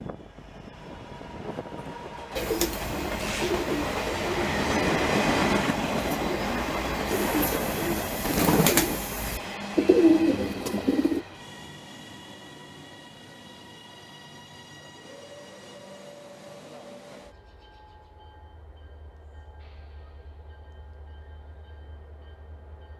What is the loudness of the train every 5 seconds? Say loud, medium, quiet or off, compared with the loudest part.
loud, loud, quiet, quiet, quiet.